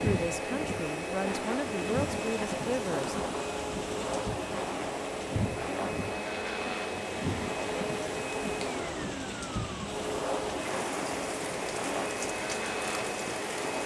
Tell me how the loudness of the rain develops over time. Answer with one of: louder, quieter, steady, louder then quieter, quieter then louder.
steady.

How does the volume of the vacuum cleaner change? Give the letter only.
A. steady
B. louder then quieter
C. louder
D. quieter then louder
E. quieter
A.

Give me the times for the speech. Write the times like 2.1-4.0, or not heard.
0.0-3.1.